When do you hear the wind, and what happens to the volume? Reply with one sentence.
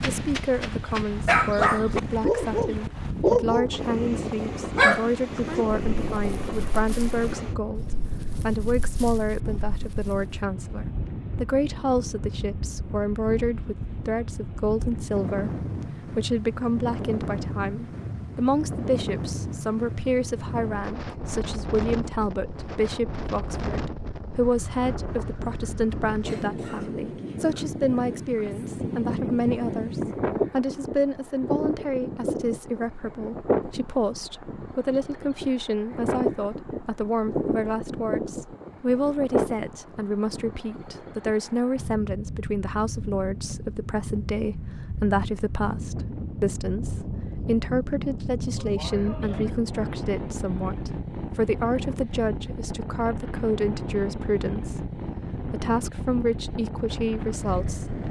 You can hear the wind from 0.0 to 58.0 s, at a steady volume.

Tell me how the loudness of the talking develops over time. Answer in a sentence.
The loudness of the talking stays about the same.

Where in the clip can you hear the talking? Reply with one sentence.
You can hear the talking from 0.1 to 58.0 s.